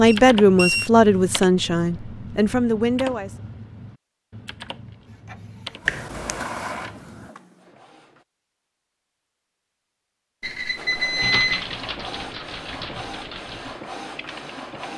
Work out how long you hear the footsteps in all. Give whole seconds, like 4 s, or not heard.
not heard.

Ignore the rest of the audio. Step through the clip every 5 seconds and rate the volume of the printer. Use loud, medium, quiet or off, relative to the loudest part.
off, loud, loud.